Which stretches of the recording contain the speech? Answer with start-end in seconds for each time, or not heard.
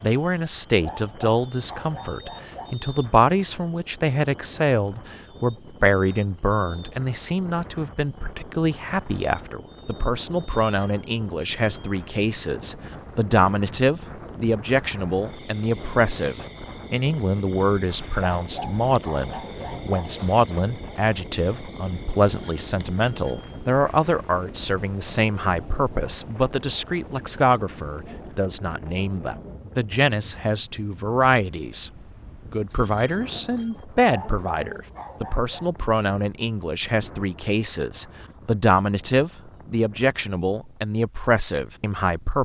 0.0-31.9, 32.5-42.4.